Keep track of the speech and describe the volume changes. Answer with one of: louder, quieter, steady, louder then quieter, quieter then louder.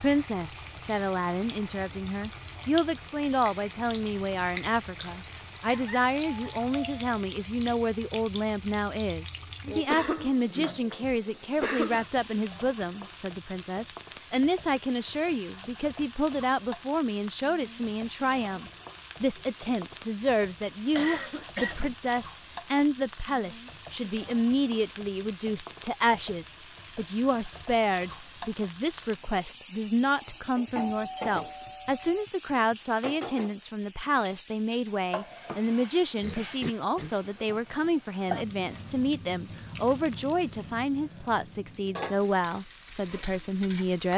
steady.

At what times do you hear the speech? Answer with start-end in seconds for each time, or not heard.
0.0-44.1.